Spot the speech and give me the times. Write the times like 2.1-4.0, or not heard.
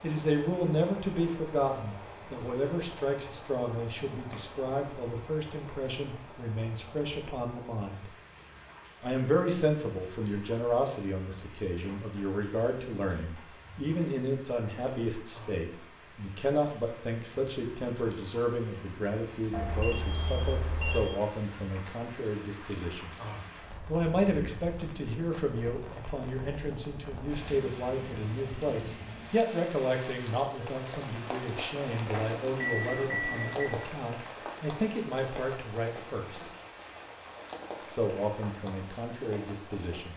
0.0-8.1, 9.0-23.1, 23.9-36.5, 37.9-40.1.